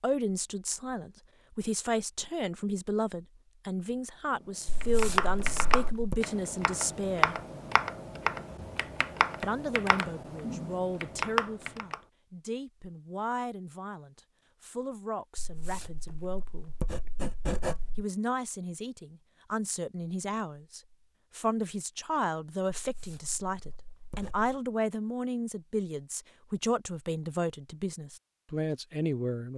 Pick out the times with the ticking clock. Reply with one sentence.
You can't hear the ticking clock here.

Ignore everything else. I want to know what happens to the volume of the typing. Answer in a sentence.
The loudness of the typing stays about the same.